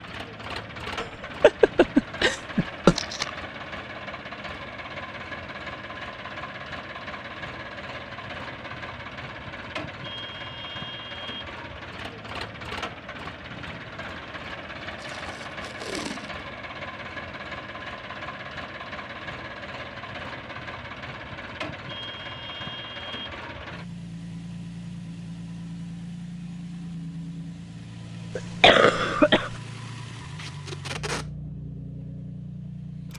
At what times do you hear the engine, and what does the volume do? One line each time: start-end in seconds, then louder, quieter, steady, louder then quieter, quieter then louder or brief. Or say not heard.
0.0-33.1 steady.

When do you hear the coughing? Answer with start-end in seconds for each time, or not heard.
1.0-3.0, 28.4-29.6.